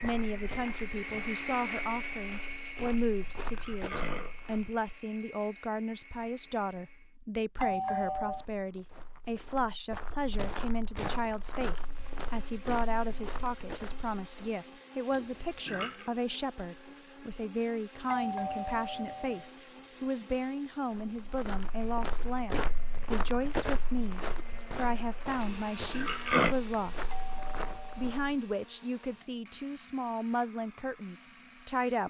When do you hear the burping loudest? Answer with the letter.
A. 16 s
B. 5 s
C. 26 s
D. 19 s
C.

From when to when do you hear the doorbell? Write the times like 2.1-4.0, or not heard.
7.5-8.4, 18.1-19.5, 27.1-28.2.